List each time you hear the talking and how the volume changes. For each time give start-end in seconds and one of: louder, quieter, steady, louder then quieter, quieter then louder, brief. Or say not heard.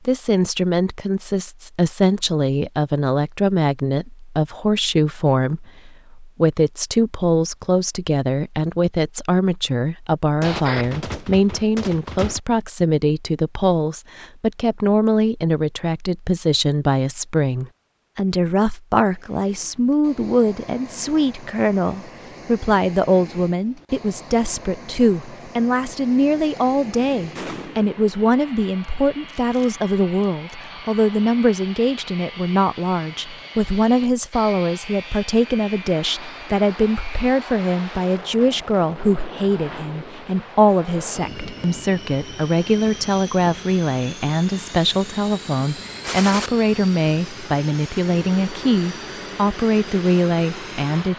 0.1-51.1 steady.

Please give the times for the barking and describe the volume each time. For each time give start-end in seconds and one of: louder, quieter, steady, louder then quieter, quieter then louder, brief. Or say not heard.
not heard.